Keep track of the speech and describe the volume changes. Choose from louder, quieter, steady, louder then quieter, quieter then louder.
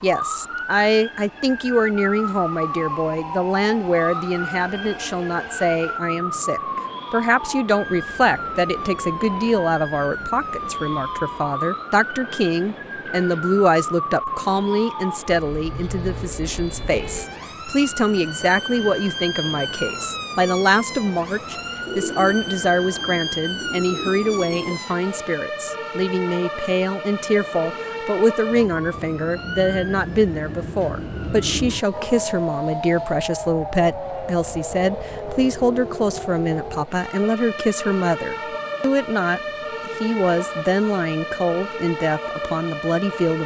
steady.